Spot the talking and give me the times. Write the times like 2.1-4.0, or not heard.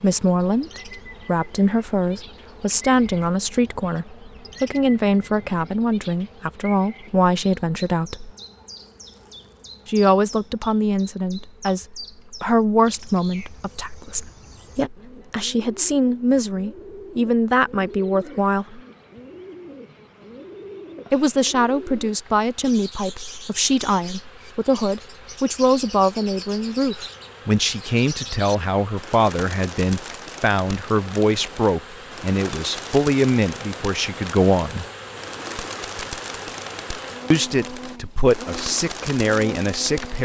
0.0-8.3, 9.8-18.8, 21.1-34.9, 37.3-40.2.